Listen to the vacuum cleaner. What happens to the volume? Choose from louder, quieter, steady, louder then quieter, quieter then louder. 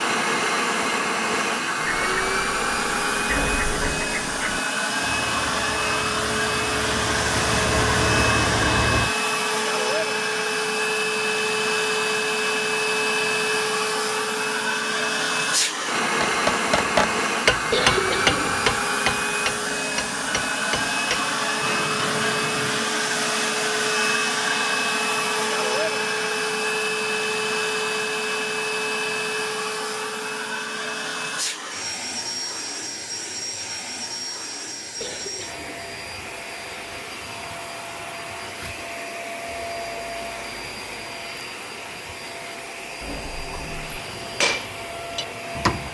quieter.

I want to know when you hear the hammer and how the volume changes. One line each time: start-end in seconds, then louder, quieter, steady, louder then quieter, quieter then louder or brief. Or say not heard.
16.2-22.9 quieter
43.9-45.8 brief.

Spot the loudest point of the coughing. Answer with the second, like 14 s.
18 s.